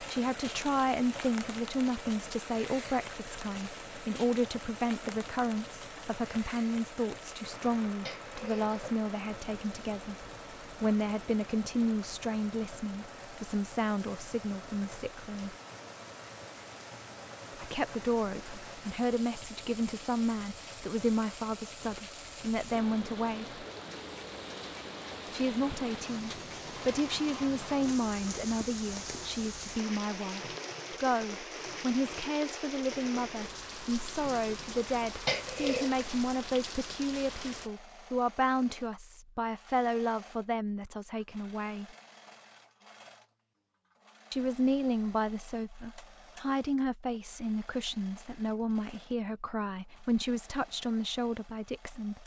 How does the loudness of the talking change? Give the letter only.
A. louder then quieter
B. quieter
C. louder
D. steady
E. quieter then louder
D.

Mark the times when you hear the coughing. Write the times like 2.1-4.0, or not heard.
8.1-8.8, 35.2-36.0.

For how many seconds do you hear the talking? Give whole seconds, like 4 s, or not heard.
46 s.